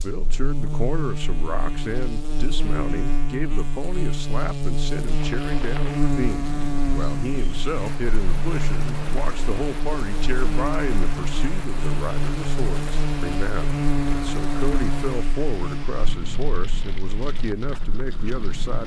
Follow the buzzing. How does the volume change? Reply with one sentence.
The loudness of the buzzing stays about the same.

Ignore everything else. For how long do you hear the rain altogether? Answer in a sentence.
You can hear the rain for 14 seconds altogether.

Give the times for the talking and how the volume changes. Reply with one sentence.
You can hear the talking from 0.0 to 18.8 s, at a steady volume.